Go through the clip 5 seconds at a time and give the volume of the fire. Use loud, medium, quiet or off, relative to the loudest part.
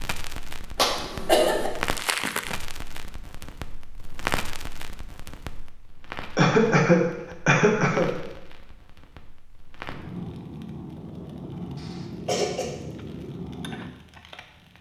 loud, medium, loud.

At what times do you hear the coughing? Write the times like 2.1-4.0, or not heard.
0.8-1.7, 6.3-8.1, 11.8-12.7.